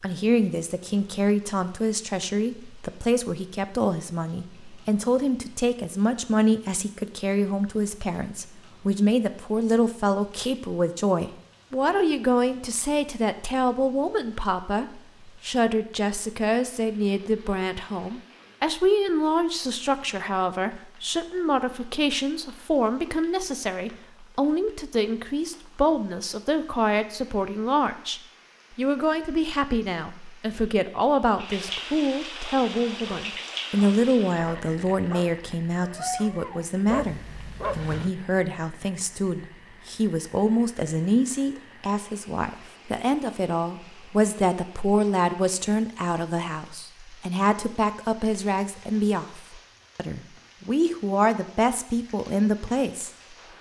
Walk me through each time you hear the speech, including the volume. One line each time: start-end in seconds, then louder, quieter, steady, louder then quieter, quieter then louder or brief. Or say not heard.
0.0-53.5 steady.